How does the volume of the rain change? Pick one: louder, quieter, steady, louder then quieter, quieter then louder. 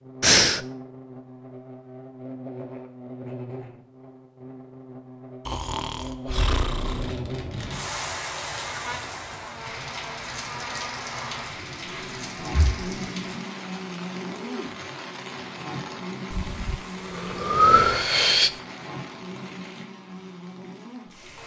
quieter.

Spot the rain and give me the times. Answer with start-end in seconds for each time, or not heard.
6.5-21.4.